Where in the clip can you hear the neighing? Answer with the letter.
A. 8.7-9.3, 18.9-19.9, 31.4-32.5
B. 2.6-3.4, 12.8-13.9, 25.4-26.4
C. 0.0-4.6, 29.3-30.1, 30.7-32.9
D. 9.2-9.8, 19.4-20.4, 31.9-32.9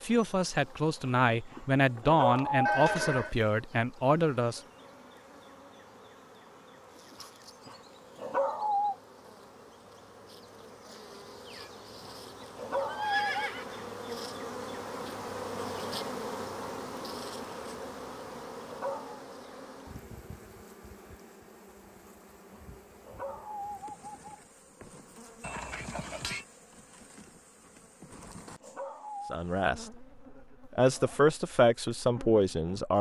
B.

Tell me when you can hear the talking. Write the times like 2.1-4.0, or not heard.
0.0-4.6, 29.3-30.1, 30.7-32.9.